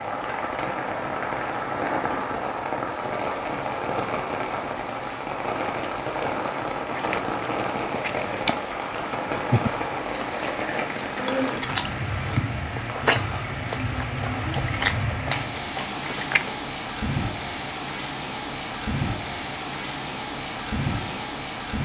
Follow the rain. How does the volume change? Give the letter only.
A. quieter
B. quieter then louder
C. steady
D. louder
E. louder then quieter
C.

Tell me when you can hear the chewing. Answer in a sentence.
The chewing can be heard from 6.9 to 16.6 s.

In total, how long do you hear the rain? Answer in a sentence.
You can hear the rain for 22 seconds altogether.